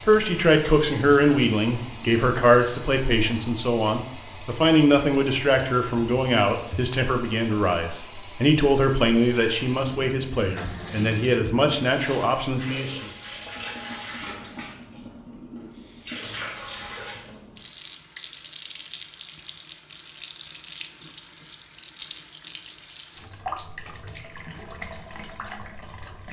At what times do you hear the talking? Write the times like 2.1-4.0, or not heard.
0.0-13.1.